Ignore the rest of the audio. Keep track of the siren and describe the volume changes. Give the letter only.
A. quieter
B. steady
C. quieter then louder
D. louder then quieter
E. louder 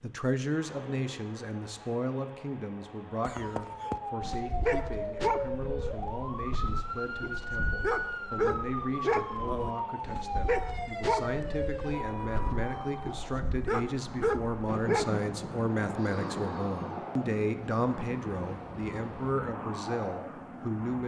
B.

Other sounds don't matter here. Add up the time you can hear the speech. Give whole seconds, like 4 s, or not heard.
21 s.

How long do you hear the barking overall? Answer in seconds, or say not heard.
12 s.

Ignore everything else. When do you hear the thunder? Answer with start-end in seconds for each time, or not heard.
14.7-19.4.